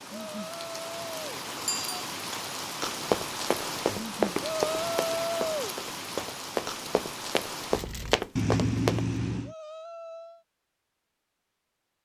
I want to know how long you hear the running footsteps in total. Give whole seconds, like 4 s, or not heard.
6 s.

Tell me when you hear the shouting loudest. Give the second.
5 s.